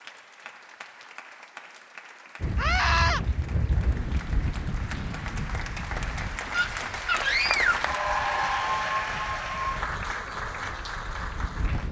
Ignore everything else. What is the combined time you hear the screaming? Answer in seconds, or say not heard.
2 s.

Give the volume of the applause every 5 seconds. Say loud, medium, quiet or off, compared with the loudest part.
quiet, loud, medium.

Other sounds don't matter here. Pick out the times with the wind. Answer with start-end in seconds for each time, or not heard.
2.4-11.8.